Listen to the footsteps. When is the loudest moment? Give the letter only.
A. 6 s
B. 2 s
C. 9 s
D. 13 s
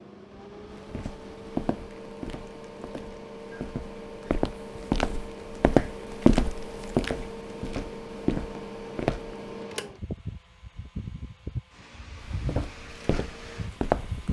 A.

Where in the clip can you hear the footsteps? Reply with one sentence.
The footsteps can be heard from 0.8 to 9.6 s and from 12.2 to 14.2 s.